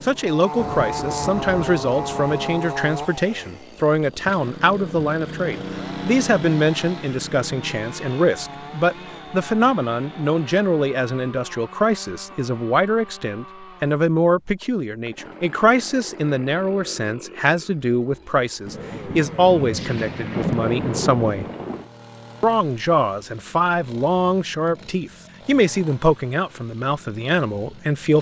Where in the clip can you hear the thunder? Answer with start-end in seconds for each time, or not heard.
0.6-2.4, 18.6-21.9.